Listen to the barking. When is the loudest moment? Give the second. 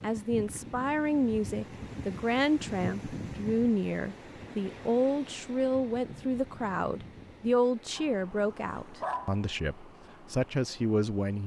9 s.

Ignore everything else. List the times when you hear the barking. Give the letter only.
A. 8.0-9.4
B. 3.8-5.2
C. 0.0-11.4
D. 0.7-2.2
A.